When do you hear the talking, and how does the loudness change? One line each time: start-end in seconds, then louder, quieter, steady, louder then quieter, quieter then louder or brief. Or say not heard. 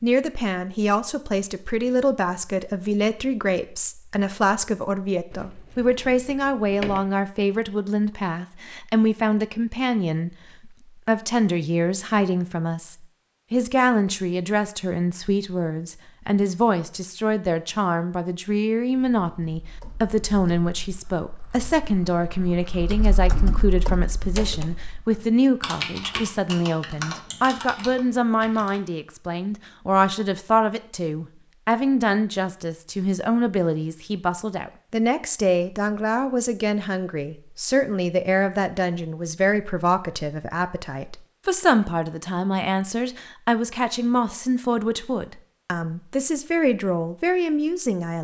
0.0-48.2 steady.